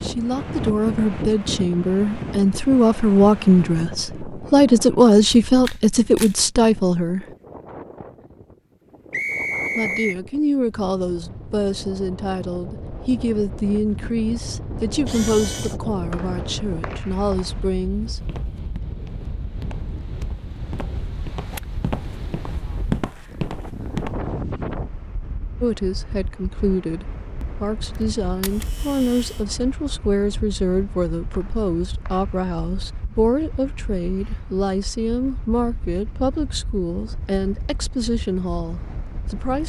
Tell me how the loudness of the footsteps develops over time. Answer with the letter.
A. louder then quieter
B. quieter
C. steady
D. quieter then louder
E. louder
E.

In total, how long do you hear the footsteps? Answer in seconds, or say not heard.
6 s.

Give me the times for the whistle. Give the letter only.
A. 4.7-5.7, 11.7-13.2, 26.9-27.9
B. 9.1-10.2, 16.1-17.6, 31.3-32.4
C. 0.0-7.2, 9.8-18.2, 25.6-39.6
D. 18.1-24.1
B.